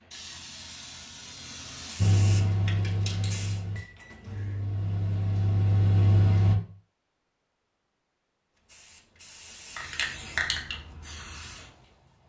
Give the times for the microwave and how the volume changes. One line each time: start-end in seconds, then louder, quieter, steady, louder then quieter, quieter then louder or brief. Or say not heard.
1.9-6.5 quieter then louder.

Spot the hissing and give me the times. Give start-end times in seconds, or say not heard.
0.0-3.6, 8.6-12.2.